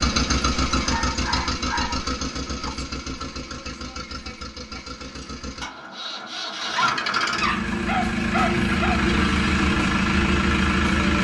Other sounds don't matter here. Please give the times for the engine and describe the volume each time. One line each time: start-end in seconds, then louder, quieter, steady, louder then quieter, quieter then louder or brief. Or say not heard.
0.0-11.1 quieter then louder.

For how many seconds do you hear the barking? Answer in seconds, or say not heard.
4 s.